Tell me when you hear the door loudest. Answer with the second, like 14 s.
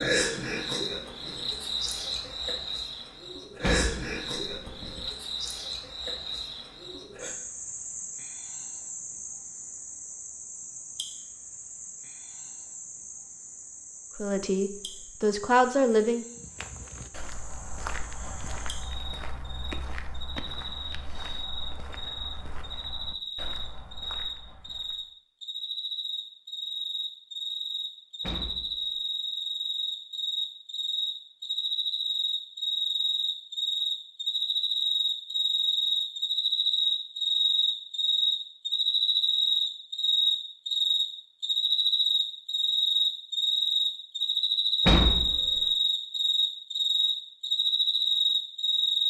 45 s.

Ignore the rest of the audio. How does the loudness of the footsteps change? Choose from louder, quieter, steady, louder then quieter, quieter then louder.
quieter.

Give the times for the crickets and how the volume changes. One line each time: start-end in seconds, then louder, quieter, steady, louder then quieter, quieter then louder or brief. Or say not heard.
0.0-49.0 quieter then louder.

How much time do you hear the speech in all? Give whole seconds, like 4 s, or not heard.
2 s.